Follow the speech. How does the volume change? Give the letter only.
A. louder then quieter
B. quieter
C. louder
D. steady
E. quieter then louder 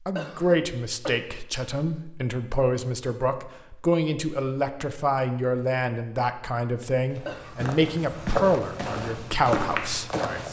D.